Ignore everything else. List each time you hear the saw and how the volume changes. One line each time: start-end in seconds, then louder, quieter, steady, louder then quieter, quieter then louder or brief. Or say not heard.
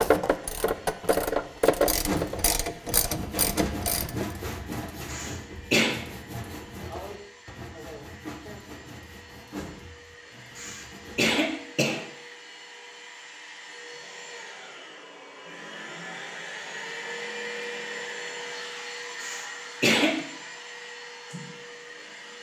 1.9-11.3 quieter.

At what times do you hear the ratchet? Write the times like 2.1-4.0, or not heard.
0.0-4.3.